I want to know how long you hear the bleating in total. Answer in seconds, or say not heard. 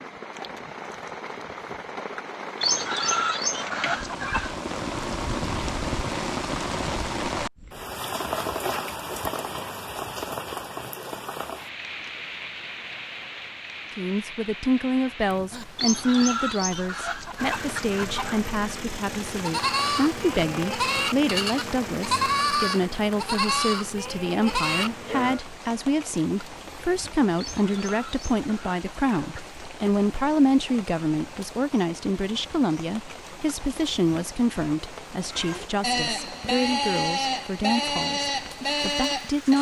10 s.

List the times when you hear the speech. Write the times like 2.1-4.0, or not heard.
13.9-39.5.